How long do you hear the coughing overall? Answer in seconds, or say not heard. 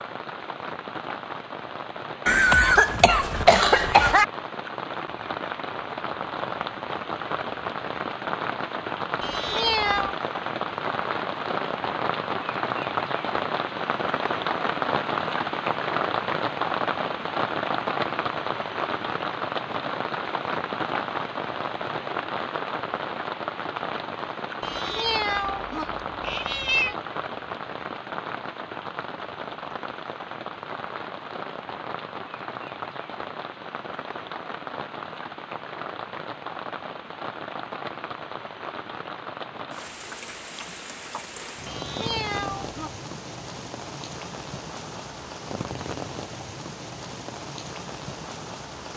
2 s.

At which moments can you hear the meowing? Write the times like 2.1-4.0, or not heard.
9.2-10.2, 24.6-26.9, 41.6-42.9.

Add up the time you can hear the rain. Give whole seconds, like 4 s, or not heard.
49 s.